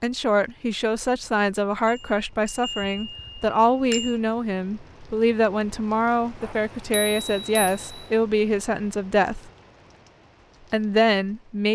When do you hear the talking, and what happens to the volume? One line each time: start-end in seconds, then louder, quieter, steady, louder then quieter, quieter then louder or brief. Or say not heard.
0.0-9.4 steady
10.7-11.7 brief.